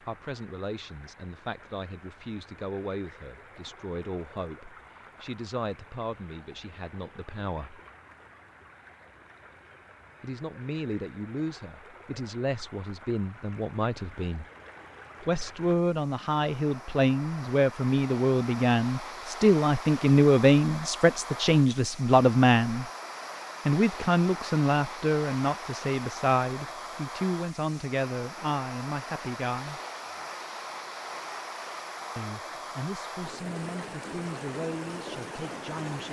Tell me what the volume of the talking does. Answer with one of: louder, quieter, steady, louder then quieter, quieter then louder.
louder then quieter.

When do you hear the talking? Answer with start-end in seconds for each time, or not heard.
0.0-7.8, 10.2-14.4, 15.2-22.9, 23.6-29.8, 32.1-36.0.